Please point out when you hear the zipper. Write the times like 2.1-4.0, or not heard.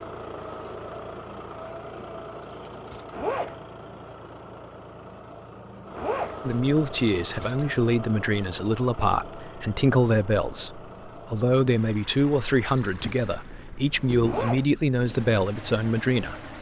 3.1-3.5, 6.0-6.4, 14.2-14.7.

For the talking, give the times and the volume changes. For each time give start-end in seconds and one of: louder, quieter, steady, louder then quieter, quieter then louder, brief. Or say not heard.
6.4-16.5 steady.